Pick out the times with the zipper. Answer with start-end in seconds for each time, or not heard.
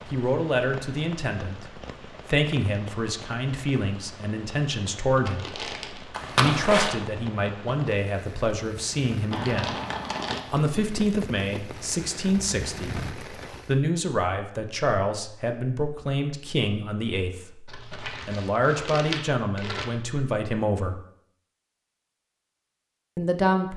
6.1-7.0.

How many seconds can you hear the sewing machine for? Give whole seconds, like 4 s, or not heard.
not heard.